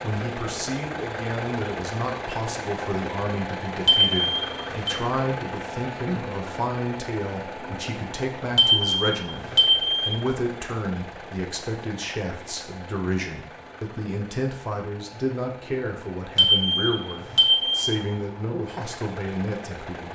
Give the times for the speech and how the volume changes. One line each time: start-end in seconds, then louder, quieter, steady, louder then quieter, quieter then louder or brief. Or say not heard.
0.0-20.1 steady.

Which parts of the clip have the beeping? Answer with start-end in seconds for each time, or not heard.
3.9-5.0, 8.6-10.2, 16.4-18.0.